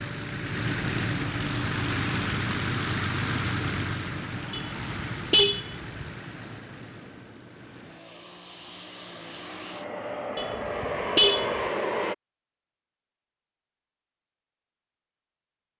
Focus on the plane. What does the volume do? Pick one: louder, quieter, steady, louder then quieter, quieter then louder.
quieter then louder.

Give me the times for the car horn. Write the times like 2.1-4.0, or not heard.
4.5-6.2, 10.3-11.6.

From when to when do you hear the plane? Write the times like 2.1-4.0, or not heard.
0.0-12.2.